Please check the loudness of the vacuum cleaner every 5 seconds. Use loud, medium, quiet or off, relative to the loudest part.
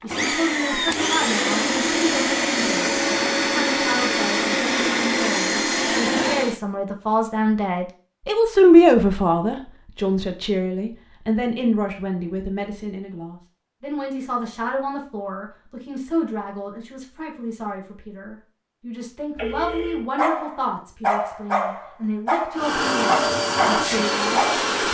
loud, loud, off, off, loud.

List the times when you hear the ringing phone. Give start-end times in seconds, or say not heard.
19.4-20.1.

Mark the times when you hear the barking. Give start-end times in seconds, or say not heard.
20.1-24.7.